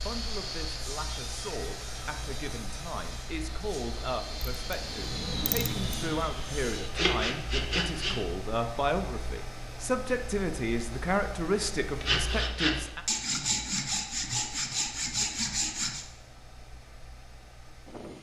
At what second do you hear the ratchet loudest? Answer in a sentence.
The loudest moment of the ratchet is at 6 seconds.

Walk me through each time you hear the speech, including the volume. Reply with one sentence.
The speech can be heard from 0.1 to 13.1 s, getting louder.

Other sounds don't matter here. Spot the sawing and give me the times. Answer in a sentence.
You can hear the sawing from 0.0 to 8.2 s and from 11.9 to 16.1 s.